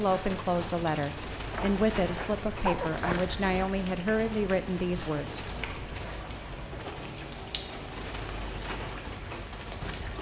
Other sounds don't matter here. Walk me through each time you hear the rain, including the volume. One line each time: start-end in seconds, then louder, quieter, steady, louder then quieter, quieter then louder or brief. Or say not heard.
0.0-10.1 steady.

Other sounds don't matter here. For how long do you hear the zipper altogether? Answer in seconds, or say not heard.
2 s.